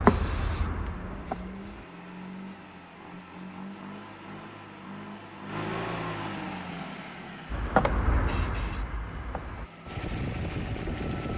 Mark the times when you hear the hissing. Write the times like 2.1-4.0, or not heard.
0.0-1.9, 7.5-9.7.